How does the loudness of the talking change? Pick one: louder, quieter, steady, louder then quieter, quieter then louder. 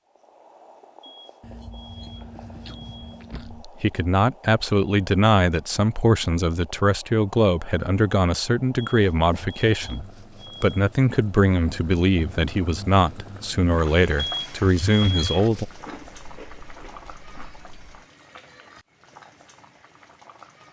steady.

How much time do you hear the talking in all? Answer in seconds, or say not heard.
12 s.